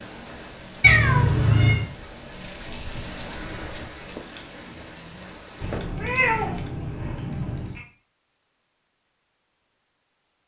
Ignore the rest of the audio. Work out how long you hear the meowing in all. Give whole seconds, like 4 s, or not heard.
3 s.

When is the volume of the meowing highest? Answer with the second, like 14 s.
1 s.